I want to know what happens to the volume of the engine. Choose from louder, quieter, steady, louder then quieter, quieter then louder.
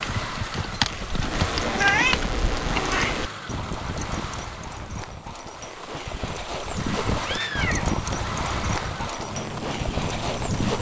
quieter then louder.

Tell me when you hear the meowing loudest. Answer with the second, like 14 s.
2 s.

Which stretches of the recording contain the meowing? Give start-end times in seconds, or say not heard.
1.3-3.3, 7.2-7.9.